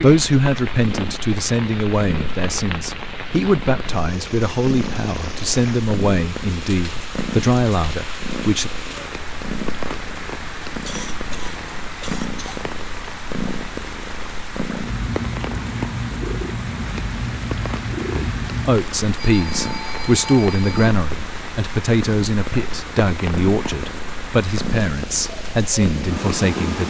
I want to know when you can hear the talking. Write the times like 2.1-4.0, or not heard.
0.0-8.7, 18.1-26.8.